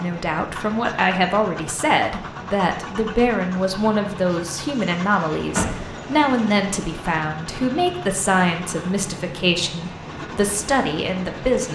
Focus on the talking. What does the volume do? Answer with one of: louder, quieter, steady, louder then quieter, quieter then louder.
steady.